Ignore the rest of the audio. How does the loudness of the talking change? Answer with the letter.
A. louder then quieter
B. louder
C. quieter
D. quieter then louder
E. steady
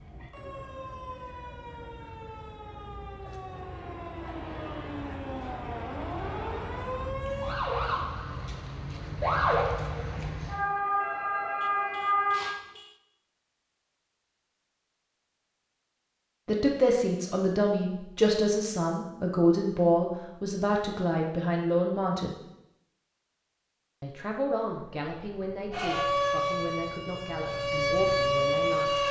C.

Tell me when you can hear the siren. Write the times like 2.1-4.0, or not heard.
0.0-12.6, 25.7-29.0.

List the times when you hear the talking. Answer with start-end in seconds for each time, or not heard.
16.4-22.4, 24.0-29.0.